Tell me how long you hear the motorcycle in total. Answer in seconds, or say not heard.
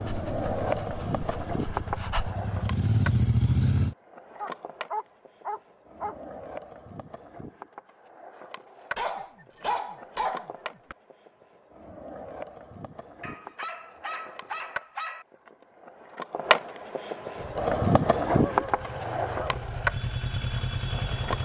8 s.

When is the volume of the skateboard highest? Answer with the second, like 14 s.
18 s.